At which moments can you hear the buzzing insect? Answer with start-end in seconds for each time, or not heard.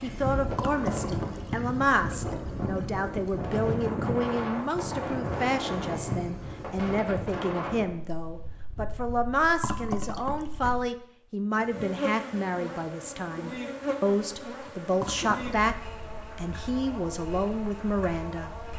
0.0-7.0, 11.6-18.7.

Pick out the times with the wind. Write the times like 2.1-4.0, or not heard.
0.0-10.8.